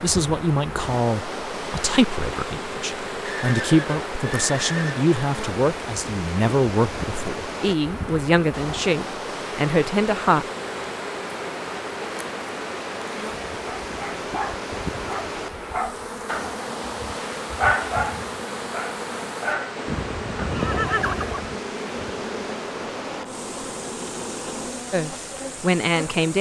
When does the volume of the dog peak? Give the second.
18 s.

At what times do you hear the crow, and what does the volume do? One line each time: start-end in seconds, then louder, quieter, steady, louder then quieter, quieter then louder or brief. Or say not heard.
not heard.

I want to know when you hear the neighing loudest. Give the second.
21 s.